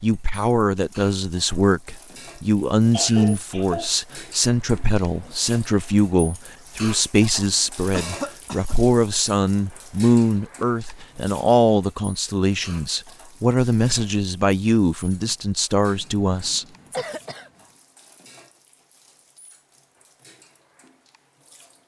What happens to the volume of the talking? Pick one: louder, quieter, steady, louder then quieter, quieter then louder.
steady.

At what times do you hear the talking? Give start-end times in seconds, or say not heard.
0.0-17.1.